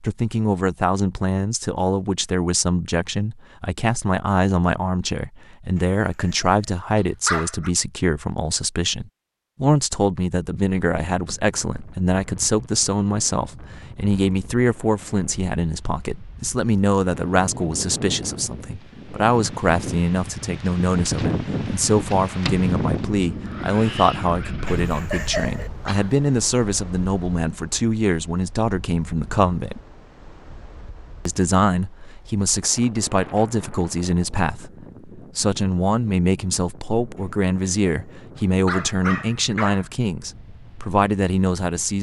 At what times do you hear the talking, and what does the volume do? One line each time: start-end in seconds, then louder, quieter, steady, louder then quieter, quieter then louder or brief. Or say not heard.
0.0-29.8 steady
31.2-41.9 steady.